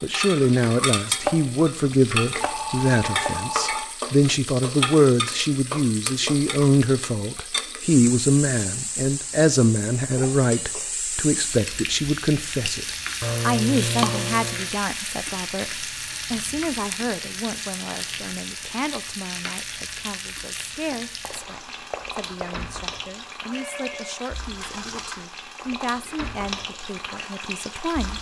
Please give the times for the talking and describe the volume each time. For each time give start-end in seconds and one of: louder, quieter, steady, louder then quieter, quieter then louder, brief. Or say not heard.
0.0-28.1 quieter.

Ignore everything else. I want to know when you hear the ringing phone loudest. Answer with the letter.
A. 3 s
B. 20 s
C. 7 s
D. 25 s
A.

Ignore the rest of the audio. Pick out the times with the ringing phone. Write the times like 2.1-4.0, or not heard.
2.4-3.9, 23.5-24.1.